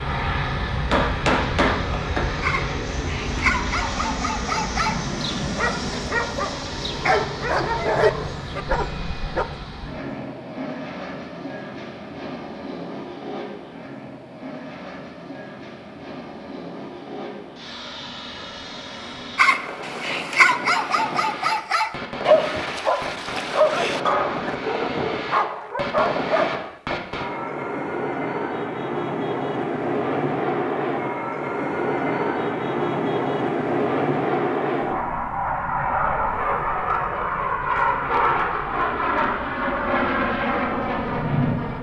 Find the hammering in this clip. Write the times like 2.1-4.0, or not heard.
0.9-2.4.